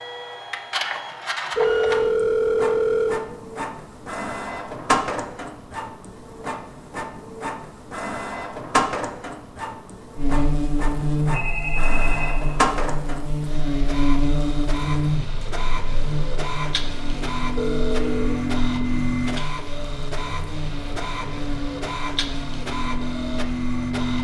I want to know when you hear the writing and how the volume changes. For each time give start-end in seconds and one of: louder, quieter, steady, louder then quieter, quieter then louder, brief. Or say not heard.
not heard.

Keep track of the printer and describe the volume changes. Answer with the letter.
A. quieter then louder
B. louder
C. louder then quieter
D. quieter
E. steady
E.